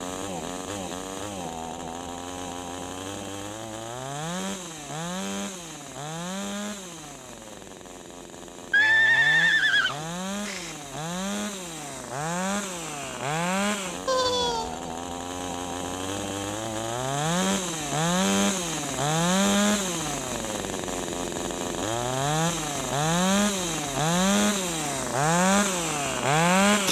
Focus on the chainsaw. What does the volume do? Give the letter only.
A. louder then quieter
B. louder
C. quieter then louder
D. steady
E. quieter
B.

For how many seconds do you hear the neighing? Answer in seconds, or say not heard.
3 s.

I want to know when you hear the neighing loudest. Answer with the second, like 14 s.
9 s.